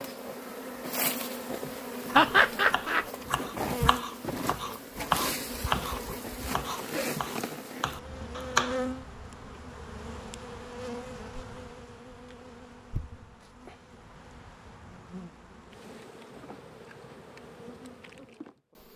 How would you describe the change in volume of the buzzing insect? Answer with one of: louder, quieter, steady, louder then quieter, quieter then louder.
quieter.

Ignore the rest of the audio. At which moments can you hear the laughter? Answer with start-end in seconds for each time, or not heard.
2.1-3.0.